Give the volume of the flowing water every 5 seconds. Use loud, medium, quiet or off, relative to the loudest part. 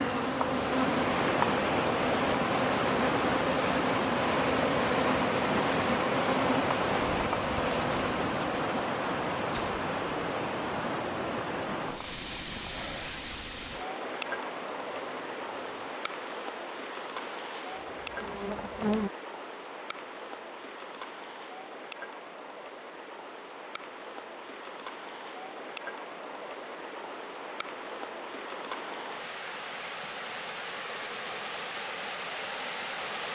loud, loud, medium, medium, quiet, medium, medium.